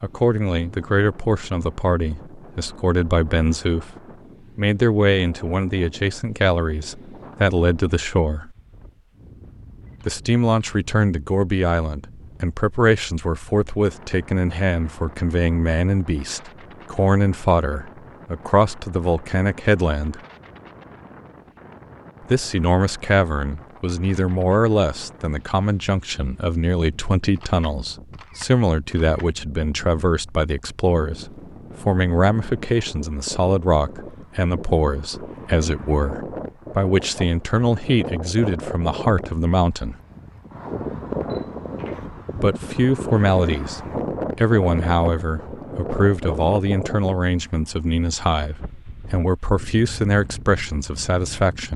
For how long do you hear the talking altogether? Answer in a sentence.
You can hear the talking for 45 seconds altogether.